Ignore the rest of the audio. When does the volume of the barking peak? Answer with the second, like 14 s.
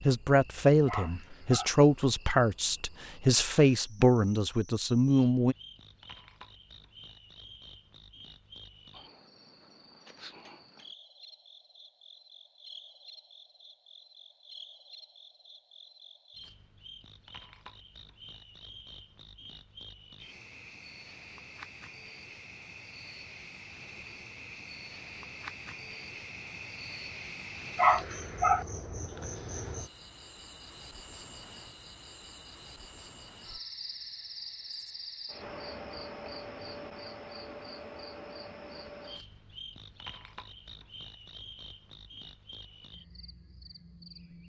28 s.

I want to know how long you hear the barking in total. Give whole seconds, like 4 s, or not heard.
2 s.